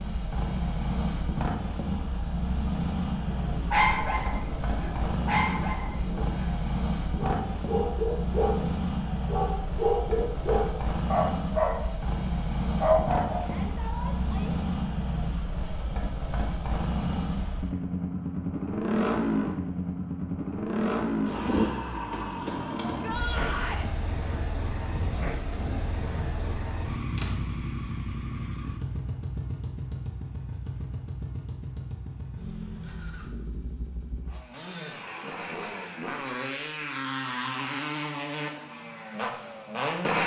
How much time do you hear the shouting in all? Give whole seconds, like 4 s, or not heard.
2 s.